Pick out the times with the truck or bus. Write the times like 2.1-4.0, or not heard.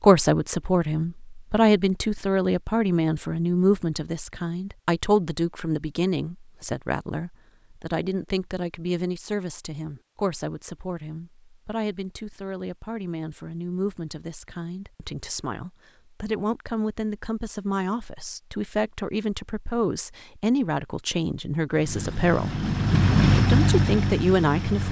21.7-24.8.